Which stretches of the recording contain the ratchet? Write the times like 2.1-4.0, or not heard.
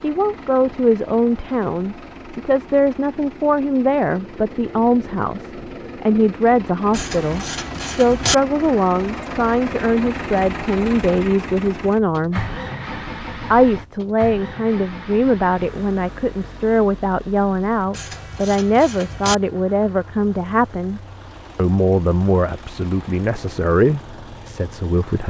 6.9-8.3, 17.9-19.4.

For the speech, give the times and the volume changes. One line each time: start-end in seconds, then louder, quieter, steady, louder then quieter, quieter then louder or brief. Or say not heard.
0.0-12.4 steady
13.5-25.2 steady.